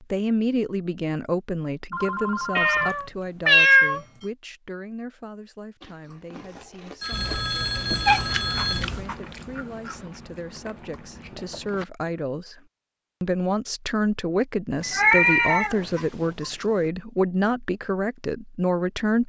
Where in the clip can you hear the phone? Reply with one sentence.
The phone can be heard from 1.9 to 3.0 s, from 7.0 to 8.8 s and from 14.8 to 16.4 s.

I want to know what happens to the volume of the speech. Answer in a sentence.
The loudness of the speech goes down, then up.